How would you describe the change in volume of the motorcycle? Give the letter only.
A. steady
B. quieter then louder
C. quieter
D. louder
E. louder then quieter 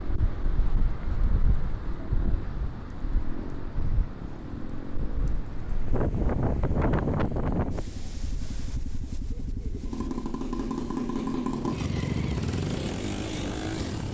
D.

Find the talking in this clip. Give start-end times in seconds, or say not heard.
not heard.